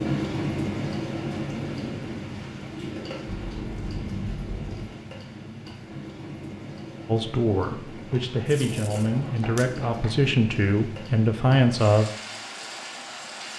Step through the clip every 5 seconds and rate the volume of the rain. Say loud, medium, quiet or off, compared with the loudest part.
loud, medium, medium.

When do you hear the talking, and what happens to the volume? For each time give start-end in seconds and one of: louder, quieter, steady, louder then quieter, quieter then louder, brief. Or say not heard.
7.0-12.1 louder.